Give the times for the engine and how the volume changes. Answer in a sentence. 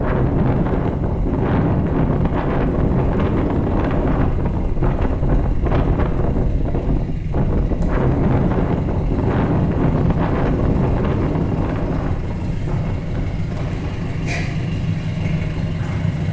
The engine can be heard from 0.0 to 16.2 s, getting louder.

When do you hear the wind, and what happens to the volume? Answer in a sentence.
You can hear the wind from 0.0 to 16.2 s, getting quieter.